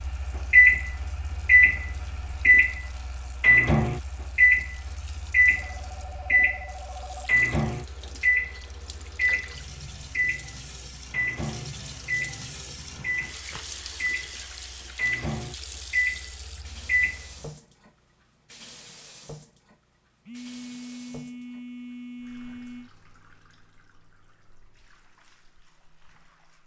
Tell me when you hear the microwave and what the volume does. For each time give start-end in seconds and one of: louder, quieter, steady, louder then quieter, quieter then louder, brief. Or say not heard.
0.0-17.4 quieter.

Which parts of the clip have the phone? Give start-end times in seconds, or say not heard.
5.5-7.4, 13.4-14.8, 20.2-22.9.